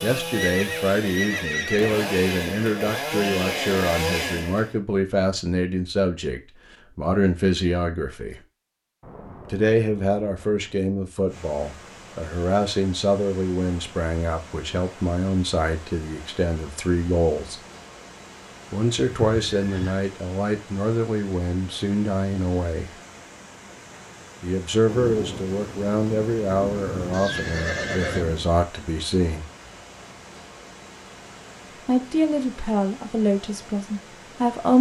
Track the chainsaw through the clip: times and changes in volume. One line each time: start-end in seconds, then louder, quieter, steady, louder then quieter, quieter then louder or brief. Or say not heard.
0.0-4.8 louder.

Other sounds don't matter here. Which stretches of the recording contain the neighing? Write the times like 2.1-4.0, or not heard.
0.3-2.0, 18.9-20.1, 27.1-28.2.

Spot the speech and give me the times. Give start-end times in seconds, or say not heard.
0.0-8.4, 9.5-17.6, 18.7-22.9, 24.4-29.4, 31.9-34.7.